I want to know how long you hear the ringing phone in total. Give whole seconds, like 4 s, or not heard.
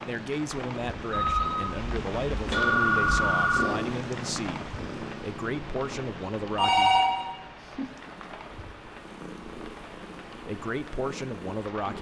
3 s.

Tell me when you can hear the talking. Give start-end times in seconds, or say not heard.
0.1-7.0, 10.4-11.9.